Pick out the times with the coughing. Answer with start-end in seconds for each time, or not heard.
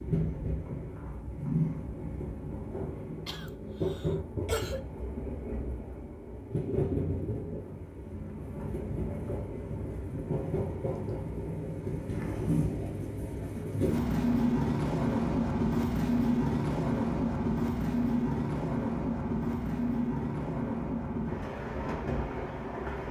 3.2-4.8.